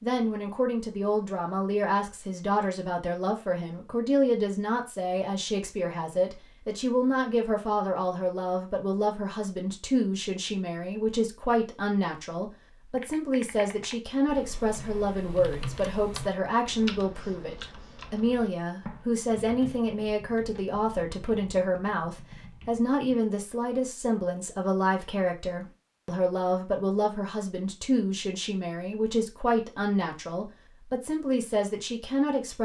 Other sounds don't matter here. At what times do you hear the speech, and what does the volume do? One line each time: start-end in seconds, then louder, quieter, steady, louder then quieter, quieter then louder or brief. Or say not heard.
0.0-32.5 steady.